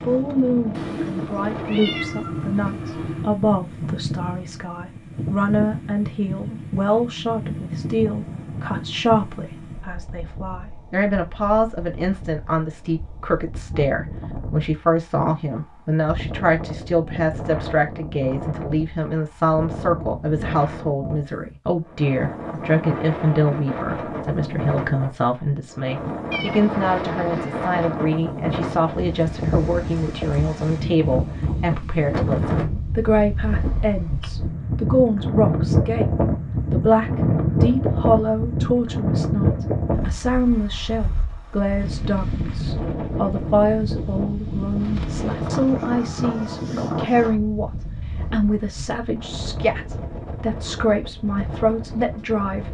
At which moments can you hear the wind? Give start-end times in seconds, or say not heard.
0.0-52.6.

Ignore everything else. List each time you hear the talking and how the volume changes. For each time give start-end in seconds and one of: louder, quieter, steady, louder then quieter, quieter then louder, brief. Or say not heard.
0.1-52.6 steady.